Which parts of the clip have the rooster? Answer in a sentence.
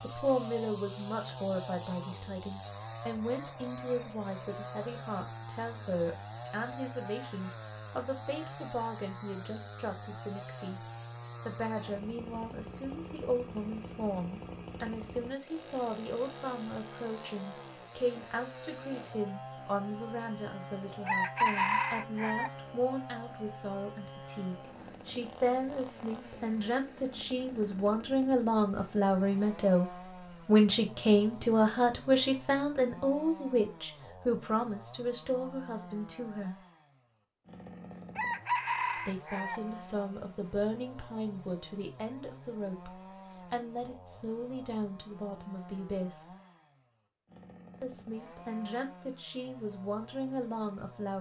You can hear the rooster from 21.1 to 22.5 s and from 38.1 to 39.6 s.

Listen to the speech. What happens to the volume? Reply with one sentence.
The volume of the speech goes up, then down.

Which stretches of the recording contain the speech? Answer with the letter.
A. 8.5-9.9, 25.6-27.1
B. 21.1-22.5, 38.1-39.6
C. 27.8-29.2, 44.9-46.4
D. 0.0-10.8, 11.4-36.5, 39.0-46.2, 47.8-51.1
D.